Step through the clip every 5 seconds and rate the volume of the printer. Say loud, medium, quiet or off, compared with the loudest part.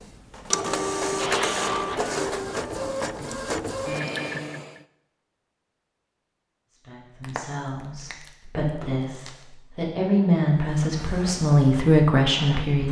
loud, off, quiet.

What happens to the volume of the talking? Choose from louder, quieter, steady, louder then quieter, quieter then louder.
louder.